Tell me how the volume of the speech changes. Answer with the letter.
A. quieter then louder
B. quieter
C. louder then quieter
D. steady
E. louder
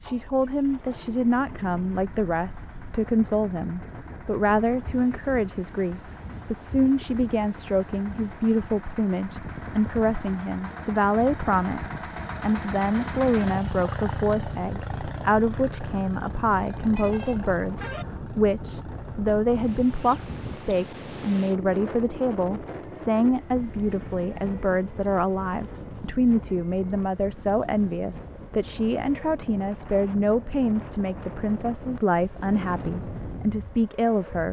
D.